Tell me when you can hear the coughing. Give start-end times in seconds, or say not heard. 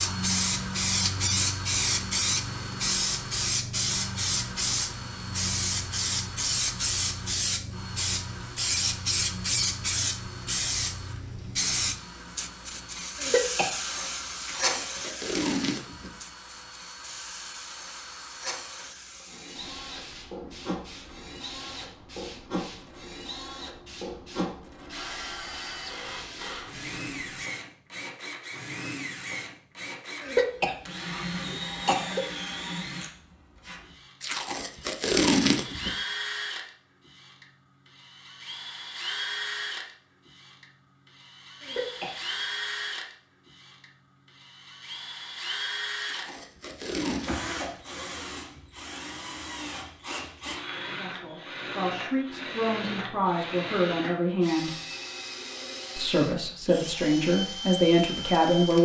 13.2-13.7, 30.2-32.2, 41.6-42.1.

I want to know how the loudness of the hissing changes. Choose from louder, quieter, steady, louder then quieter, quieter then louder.
quieter.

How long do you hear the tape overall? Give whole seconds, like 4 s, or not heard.
5 s.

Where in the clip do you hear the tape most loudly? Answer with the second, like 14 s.
35 s.